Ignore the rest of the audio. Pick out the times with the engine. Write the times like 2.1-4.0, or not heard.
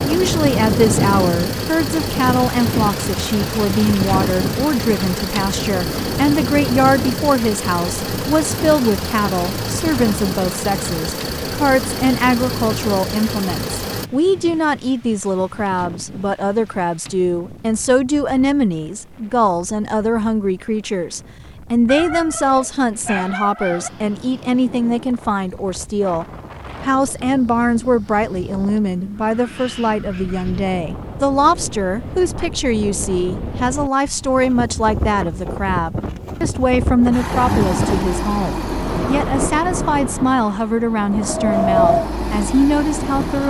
0.0-14.1, 37.1-43.4.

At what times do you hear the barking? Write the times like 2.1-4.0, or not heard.
21.9-23.9.